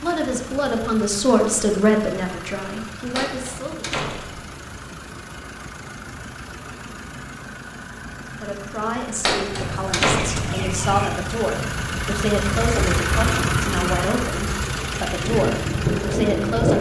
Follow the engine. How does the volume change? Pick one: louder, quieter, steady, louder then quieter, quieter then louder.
louder.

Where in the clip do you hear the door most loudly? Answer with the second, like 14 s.
10 s.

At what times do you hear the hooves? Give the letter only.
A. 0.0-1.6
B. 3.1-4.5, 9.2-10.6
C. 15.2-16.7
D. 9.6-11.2
C.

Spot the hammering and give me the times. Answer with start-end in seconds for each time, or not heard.
not heard.